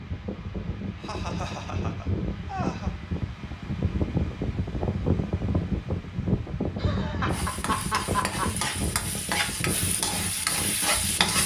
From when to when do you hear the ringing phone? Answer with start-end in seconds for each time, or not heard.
not heard.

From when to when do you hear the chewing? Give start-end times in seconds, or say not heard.
not heard.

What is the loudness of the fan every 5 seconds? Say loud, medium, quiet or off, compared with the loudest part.
loud, loud, medium.